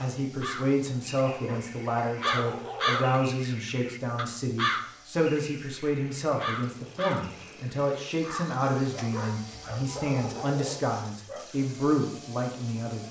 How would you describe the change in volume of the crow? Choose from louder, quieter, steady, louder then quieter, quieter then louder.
louder then quieter.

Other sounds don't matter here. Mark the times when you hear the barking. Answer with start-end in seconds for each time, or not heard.
1.2-3.1, 8.9-11.5.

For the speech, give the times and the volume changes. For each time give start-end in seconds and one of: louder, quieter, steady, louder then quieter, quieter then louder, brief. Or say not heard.
0.0-13.0 steady.